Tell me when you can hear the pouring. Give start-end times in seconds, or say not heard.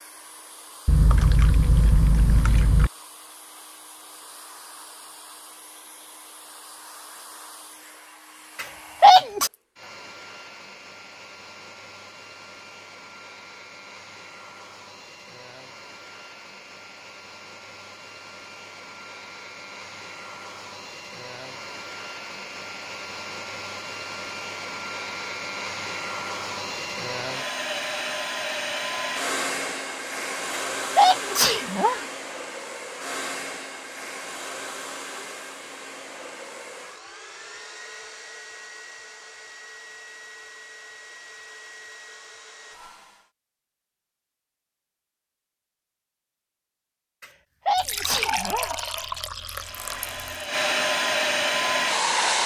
0.8-2.9, 47.8-50.5.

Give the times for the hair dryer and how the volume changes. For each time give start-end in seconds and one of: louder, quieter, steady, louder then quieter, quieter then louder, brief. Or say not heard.
0.0-43.3 louder then quieter
49.5-52.4 brief.